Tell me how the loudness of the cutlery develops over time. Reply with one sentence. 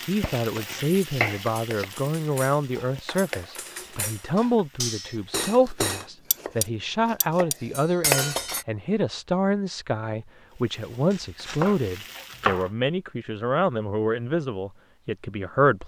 The loudness of the cutlery goes up.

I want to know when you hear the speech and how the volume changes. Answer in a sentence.
The speech can be heard from 0.0 to 15.8 s, at a steady volume.